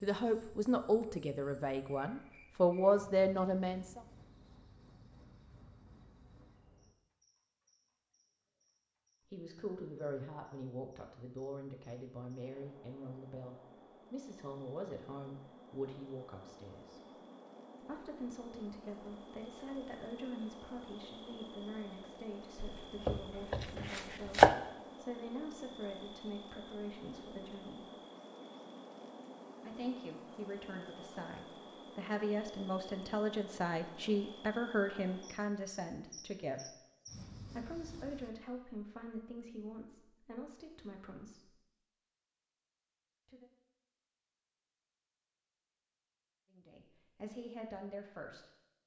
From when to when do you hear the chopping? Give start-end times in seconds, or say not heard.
22.6-24.6.